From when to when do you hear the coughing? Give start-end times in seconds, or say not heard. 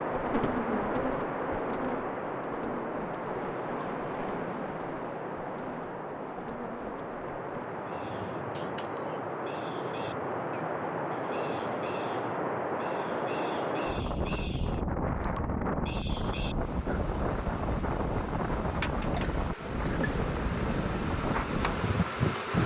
8.6-9.2, 19.1-20.1.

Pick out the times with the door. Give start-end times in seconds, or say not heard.
not heard.